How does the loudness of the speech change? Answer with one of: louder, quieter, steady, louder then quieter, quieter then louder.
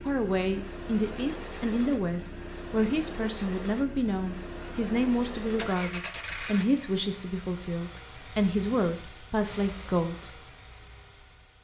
steady.